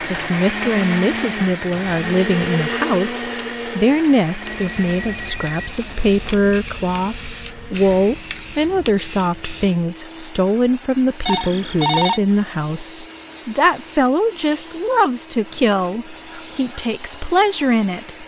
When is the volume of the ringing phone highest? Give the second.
12 s.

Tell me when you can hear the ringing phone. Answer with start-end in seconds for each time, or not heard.
4.4-6.4, 11.2-12.2.